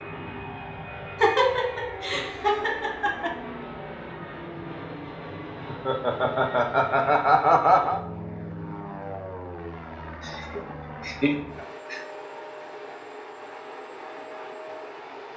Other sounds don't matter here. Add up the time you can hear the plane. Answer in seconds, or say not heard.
15 s.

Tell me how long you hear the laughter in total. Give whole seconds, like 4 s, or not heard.
6 s.